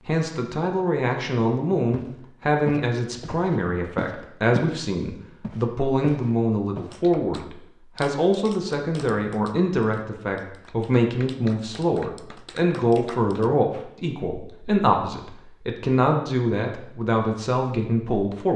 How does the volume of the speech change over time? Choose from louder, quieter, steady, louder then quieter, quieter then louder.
steady.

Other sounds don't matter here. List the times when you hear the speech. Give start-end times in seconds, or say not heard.
0.1-18.5.